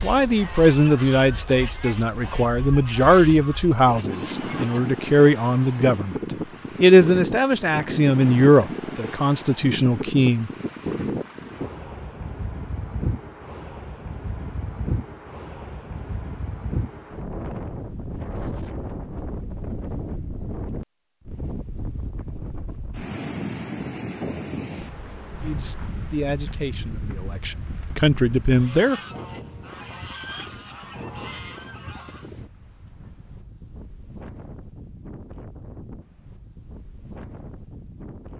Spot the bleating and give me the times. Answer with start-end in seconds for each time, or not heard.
not heard.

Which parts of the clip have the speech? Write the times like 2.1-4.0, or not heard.
0.0-6.2, 6.8-10.5, 25.4-29.0.